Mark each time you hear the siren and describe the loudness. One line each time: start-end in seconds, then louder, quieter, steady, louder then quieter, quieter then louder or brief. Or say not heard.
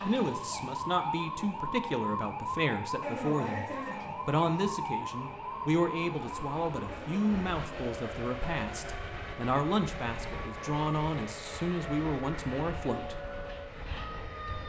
0.0-14.6 quieter.